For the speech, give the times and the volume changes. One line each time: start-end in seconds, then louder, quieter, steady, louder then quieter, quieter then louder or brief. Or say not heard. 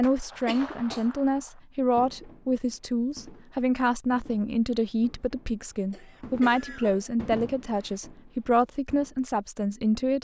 0.0-10.1 steady.